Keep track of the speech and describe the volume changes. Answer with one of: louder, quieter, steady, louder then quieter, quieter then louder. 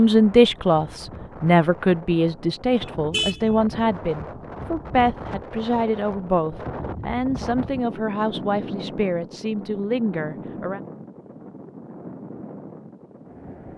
quieter.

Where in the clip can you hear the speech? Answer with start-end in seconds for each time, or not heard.
0.0-10.8.